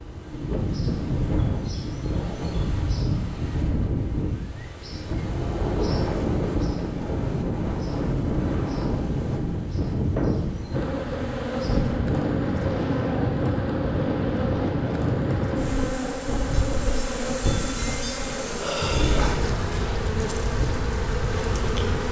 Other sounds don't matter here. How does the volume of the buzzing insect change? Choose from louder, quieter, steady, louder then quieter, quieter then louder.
steady.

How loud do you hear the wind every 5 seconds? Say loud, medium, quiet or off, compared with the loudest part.
loud, loud, loud, loud, medium.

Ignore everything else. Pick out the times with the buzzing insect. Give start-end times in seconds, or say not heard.
10.7-22.0.